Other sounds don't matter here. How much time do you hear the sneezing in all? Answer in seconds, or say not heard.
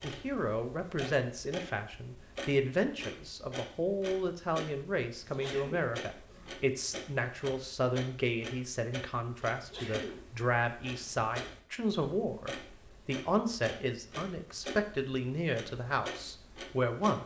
2 s.